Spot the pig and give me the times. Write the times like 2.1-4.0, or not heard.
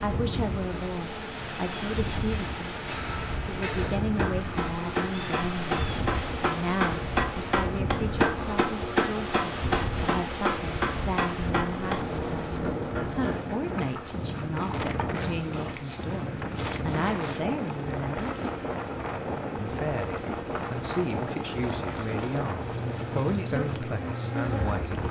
not heard.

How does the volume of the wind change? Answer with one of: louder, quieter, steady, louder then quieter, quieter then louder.
steady.